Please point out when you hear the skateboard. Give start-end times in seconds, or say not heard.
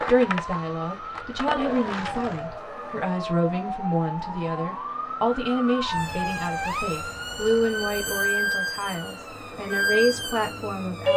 0.0-2.6.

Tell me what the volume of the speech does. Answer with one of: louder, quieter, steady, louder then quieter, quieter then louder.
steady.